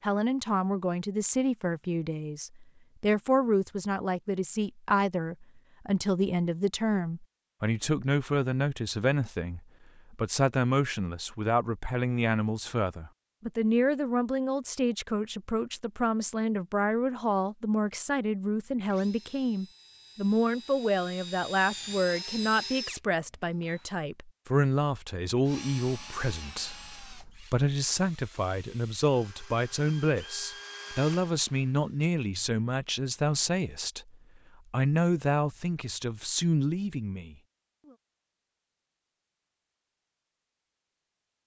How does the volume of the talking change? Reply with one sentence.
The loudness of the talking stays about the same.